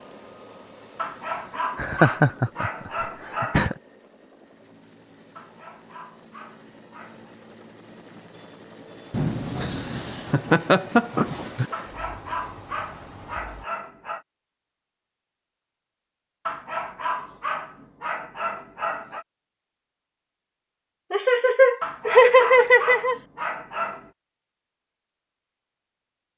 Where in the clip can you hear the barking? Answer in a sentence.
The barking can be heard from 0.9 to 3.8 s, from 5.3 to 7.3 s, from 11.7 to 14.2 s, from 16.4 to 19.2 s and from 21.8 to 24.1 s.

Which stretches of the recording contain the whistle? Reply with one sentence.
You can't hear the whistle here.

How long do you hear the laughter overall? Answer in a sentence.
The laughter can be heard for 7 seconds in total.